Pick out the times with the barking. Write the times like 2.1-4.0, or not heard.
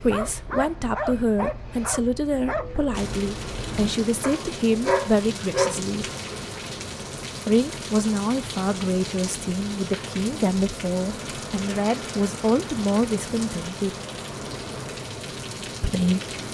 0.0-5.8.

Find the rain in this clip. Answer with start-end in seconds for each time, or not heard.
2.9-16.4.